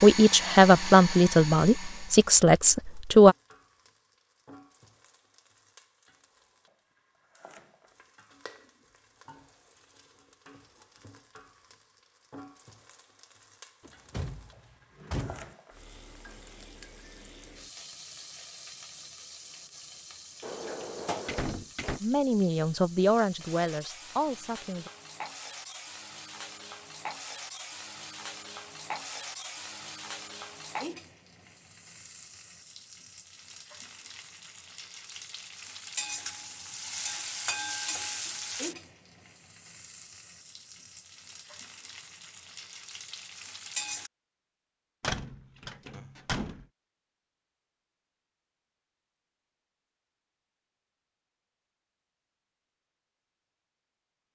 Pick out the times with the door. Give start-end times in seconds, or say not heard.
13.8-15.6, 20.4-22.0, 45.0-46.6.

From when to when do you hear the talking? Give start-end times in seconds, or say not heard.
0.0-3.4, 22.0-24.9.